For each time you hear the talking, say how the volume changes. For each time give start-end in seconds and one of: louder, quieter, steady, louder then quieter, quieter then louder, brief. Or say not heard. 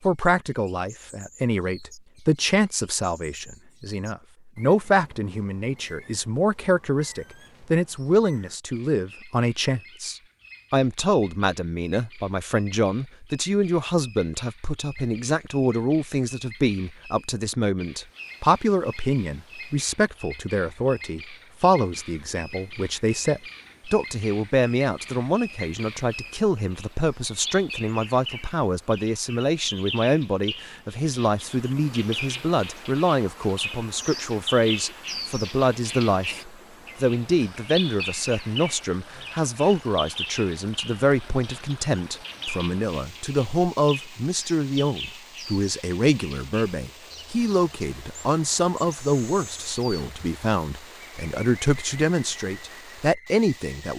0.0-53.9 steady.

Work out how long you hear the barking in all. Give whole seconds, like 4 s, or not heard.
not heard.